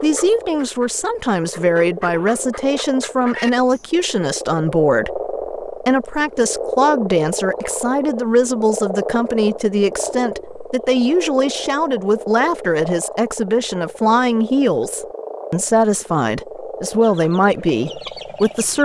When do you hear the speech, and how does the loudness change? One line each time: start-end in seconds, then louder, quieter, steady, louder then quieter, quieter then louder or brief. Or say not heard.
0.0-18.7 steady.